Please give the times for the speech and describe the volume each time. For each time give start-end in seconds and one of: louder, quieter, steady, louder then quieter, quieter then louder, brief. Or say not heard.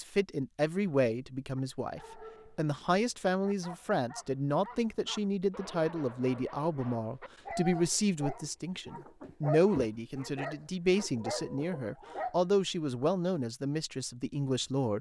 0.0-14.9 steady.